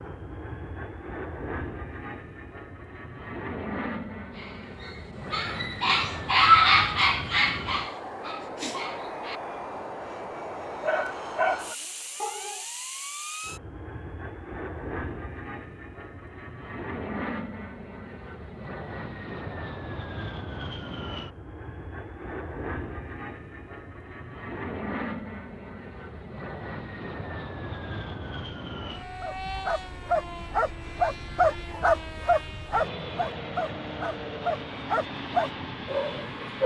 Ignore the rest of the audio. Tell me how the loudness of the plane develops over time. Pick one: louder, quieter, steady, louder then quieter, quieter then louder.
steady.